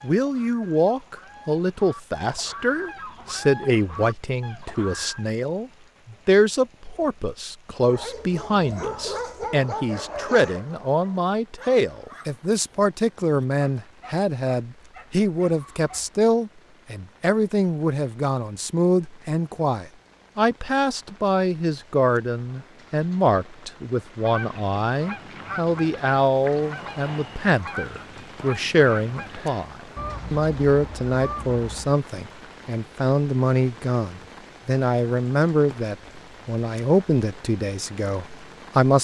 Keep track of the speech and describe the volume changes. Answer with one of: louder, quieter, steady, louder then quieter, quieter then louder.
steady.